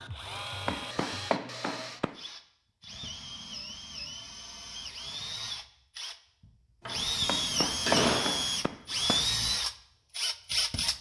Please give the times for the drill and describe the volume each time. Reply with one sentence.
The drill can be heard from 0.0 to 10.9 s, getting louder.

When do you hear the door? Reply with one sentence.
You can hear the door from 6.8 to 8.4 s.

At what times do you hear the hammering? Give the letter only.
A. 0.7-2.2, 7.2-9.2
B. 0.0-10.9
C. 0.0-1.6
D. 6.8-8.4
A.